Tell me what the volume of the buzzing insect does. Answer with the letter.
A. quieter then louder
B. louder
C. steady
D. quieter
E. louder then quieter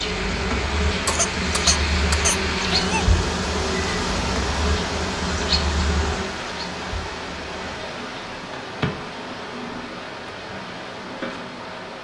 D.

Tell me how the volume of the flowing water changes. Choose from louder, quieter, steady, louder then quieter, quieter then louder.
quieter.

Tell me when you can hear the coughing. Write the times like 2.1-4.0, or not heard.
1.1-3.0.